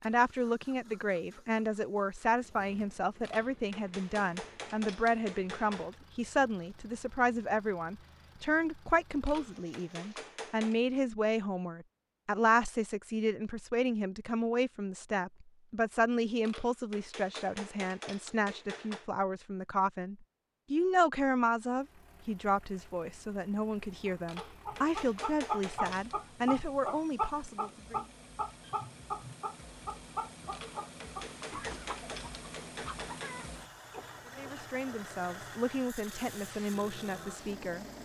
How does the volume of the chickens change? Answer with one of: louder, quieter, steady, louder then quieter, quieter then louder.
quieter.